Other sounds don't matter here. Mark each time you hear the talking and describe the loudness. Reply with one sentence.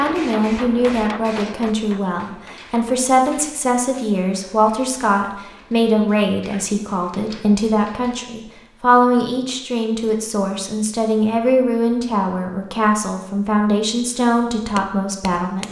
The talking can be heard from 0.0 to 15.6 s, at a steady volume.